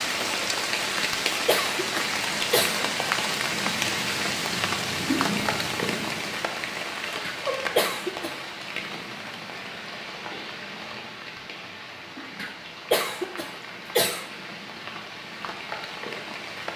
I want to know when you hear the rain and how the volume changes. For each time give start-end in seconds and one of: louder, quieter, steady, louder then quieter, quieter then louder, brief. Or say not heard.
0.0-16.7 quieter.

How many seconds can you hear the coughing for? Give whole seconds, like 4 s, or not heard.
5 s.